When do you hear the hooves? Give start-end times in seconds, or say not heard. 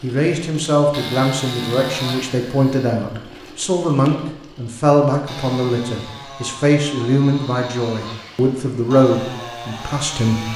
not heard.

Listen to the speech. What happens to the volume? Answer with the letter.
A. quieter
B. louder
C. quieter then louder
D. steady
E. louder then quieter
D.